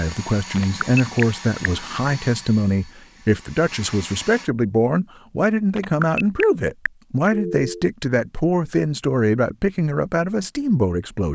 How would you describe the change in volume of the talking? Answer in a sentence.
The loudness of the talking stays about the same.